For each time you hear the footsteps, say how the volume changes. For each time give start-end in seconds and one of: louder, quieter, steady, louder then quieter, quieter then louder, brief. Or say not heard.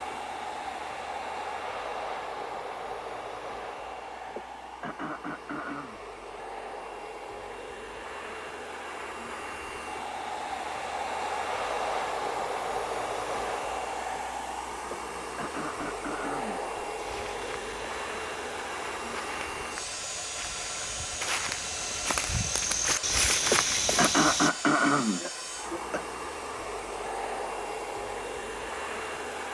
16.9-24.5 louder.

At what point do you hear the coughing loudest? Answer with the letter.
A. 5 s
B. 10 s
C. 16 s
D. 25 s
D.